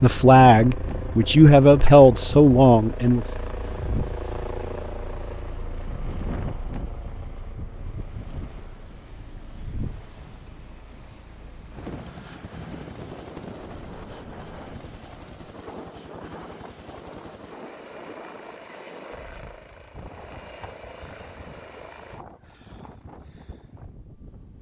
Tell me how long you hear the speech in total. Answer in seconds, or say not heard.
3 s.